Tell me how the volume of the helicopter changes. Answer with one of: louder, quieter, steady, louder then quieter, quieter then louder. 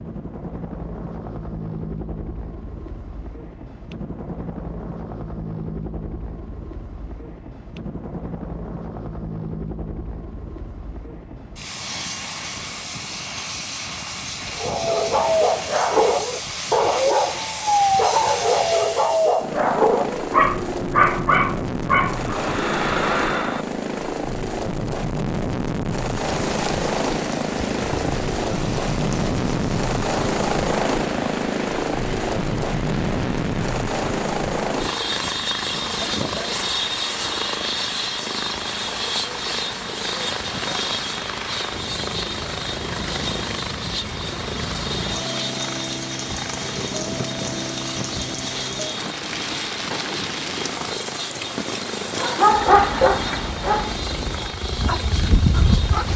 louder then quieter.